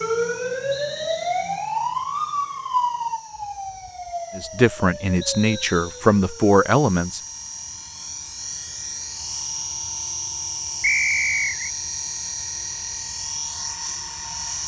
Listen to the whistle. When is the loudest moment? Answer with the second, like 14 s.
11 s.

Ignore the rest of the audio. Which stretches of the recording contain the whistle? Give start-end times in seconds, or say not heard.
0.7-1.6, 5.2-6.0, 10.8-11.7.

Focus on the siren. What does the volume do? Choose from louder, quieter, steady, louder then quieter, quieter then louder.
quieter.